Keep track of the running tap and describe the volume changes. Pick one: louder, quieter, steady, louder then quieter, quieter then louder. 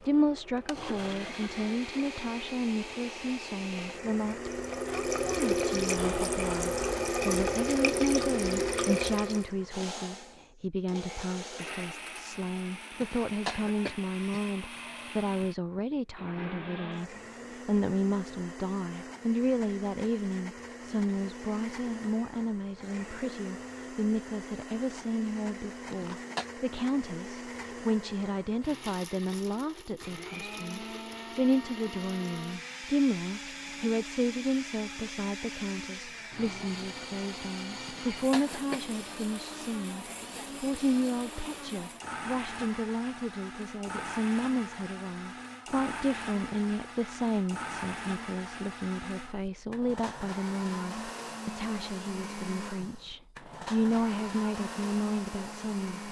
louder.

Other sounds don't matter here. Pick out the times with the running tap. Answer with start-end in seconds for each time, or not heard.
0.0-9.5.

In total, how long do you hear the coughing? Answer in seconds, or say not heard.
3 s.